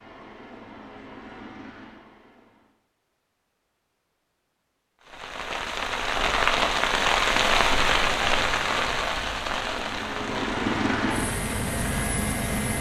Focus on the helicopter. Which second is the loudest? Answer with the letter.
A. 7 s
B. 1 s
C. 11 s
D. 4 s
C.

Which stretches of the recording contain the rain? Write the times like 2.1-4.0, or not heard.
5.0-12.7.